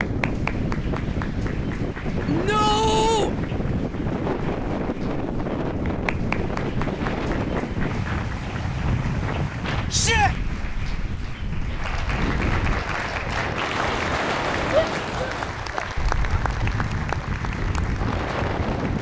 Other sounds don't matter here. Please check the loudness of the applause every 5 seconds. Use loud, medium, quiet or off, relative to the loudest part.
medium, medium, loud, loud.